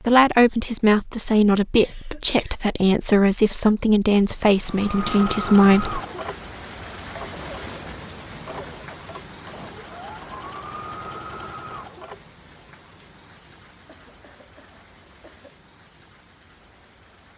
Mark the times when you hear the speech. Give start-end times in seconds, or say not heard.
0.1-6.0.